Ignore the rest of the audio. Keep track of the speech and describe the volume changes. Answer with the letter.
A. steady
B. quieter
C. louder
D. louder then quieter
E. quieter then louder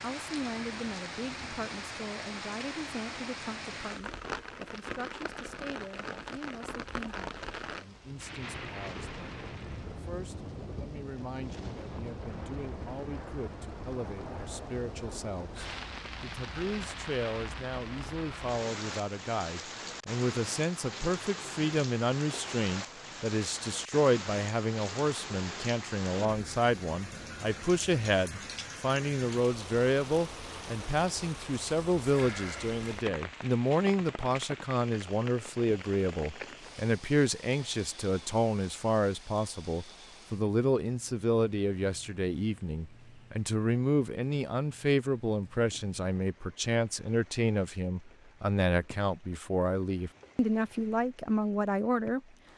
C.